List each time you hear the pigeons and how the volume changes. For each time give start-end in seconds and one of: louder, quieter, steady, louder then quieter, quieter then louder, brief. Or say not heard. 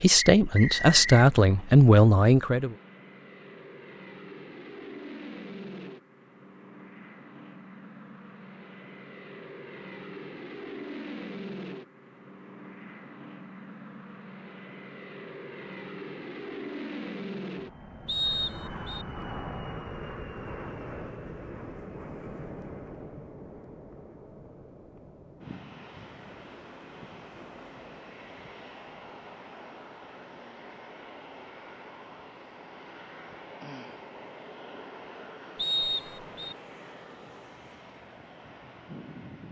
not heard.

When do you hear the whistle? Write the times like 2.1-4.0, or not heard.
0.3-1.2, 18.1-19.1, 35.5-36.5.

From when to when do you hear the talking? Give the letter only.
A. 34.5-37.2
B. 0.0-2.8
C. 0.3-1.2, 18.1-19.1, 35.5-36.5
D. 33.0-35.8
B.